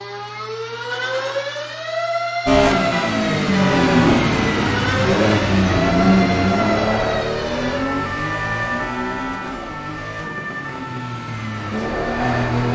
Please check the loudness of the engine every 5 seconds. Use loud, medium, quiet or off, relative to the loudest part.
loud, loud, medium.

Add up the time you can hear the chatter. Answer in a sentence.
You can't hear the chatter here.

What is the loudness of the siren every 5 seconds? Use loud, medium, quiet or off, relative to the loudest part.
loud, loud, medium.